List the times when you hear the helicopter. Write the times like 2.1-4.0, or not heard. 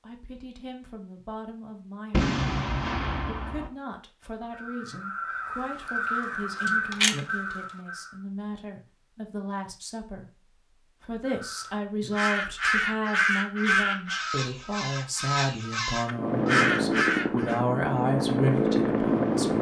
16.1-19.5.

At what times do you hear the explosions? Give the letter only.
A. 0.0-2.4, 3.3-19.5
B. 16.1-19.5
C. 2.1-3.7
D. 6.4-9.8
C.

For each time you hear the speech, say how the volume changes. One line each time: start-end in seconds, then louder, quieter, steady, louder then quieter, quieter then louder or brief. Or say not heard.
0.0-2.4 brief
3.3-19.5 louder.